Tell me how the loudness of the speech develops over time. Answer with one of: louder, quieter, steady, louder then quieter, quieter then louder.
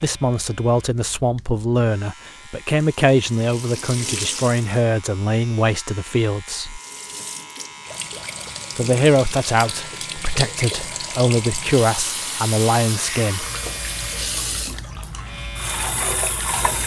steady.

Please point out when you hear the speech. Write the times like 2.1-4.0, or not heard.
0.0-6.8, 8.8-13.4.